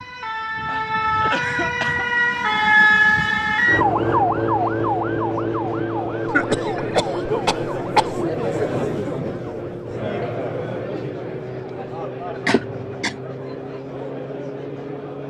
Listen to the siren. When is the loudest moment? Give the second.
3 s.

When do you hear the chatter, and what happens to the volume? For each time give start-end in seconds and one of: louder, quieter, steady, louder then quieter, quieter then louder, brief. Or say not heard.
4.4-15.2 louder then quieter.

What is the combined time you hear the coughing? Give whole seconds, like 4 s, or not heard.
4 s.